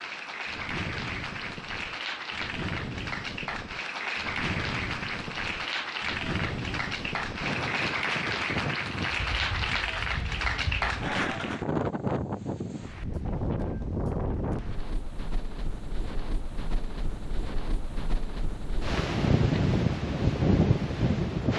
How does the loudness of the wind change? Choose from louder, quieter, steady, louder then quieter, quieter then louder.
louder.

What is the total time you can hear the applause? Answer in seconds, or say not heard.
12 s.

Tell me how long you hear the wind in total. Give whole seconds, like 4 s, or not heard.
21 s.